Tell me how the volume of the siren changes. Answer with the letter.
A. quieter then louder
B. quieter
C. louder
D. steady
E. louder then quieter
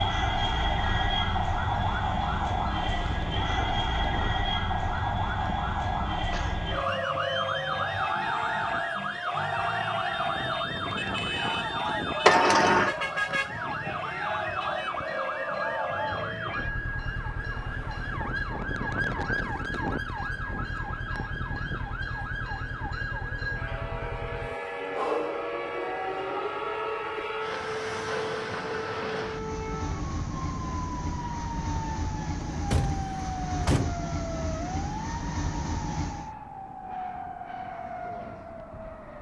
B.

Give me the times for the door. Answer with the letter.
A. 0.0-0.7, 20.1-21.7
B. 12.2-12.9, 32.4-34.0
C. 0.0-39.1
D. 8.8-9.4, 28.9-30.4
B.